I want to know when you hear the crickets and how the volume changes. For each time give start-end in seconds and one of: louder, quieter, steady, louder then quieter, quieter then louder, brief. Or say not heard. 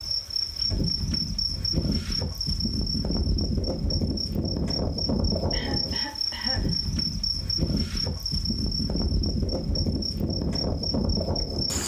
0.0-11.8 steady.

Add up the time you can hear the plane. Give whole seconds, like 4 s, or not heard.
not heard.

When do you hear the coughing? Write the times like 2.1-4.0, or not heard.
5.5-6.8.